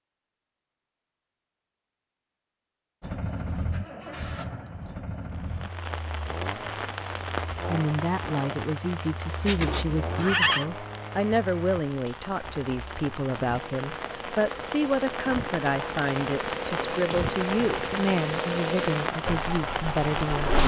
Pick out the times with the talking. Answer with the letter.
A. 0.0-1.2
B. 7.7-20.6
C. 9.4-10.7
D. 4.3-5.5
B.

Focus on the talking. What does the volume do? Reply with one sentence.
The loudness of the talking stays about the same.